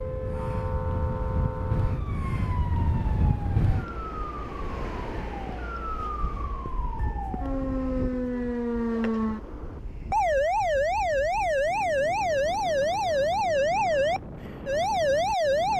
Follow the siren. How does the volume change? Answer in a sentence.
The volume of the siren goes up.